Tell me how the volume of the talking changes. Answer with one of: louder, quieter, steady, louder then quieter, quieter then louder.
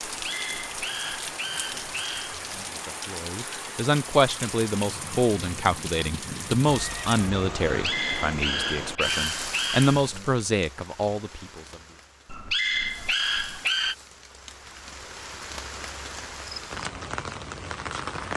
quieter then louder.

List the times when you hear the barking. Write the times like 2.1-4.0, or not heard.
0.1-2.7, 7.7-10.3, 12.2-13.9.